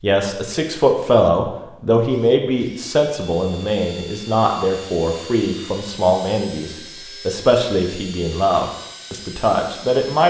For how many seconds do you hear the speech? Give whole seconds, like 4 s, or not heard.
10 s.